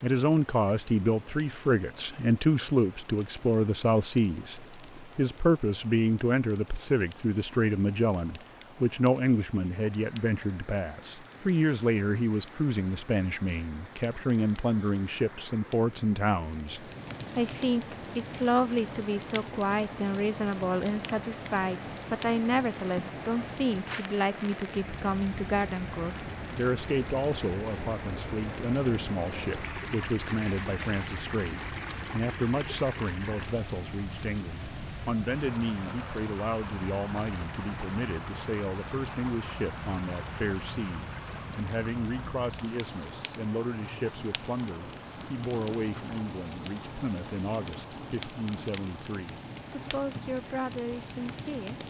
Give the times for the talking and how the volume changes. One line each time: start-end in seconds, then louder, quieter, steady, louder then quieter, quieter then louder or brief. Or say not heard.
0.0-51.8 quieter.